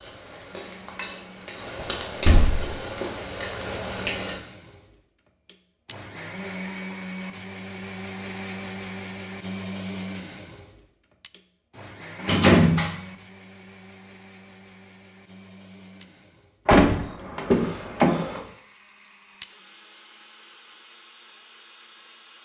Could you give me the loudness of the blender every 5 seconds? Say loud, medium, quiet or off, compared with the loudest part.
medium, loud, medium, quiet, quiet.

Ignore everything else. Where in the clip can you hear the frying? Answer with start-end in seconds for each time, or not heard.
0.0-4.4.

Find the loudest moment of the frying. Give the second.
4 s.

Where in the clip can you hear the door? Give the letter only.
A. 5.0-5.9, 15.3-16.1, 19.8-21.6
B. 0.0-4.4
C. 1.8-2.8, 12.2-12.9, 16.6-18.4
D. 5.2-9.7
C.